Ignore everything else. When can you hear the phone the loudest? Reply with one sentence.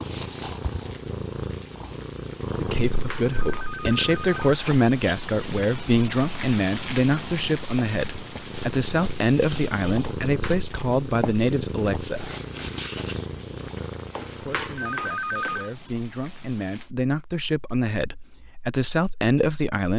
The loudest moment of the phone is at 15 seconds.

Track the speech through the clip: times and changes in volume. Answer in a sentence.
The speech can be heard from 2.5 to 12.3 s, at a steady volume; and from 14.4 to 19.9 s, getting louder.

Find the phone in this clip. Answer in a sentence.
The phone can be heard from 2.9 to 4.5 s, from 10.2 to 10.7 s and from 14.1 to 15.7 s.